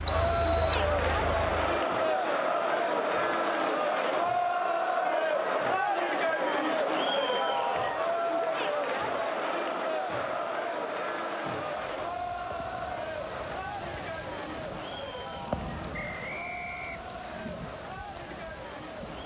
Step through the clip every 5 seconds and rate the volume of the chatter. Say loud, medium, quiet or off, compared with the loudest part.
loud, loud, medium, quiet.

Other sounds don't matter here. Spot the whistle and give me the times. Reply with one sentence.
You can hear the whistle from 0.1 to 0.8 s and from 15.9 to 17.4 s.